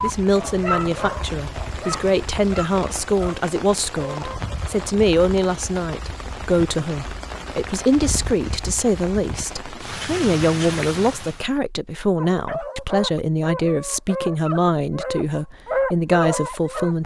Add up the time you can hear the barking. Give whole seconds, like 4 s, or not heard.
9 s.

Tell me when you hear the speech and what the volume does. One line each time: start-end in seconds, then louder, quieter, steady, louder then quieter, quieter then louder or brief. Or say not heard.
0.0-17.0 steady.